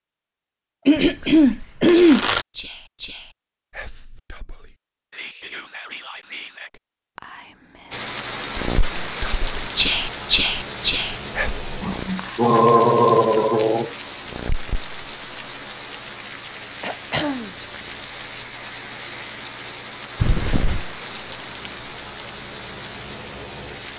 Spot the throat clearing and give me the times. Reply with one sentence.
The throat clearing can be heard from 0.8 to 2.2 s, from 11.8 to 13.9 s and from 16.8 to 17.5 s.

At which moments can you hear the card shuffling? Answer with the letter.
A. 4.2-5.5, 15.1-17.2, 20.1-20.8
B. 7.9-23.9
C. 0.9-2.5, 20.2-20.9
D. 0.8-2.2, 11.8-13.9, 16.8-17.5
C.